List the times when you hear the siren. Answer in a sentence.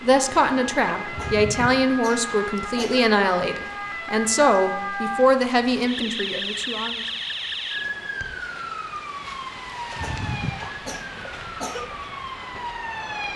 The siren can be heard from 0.0 to 13.3 s.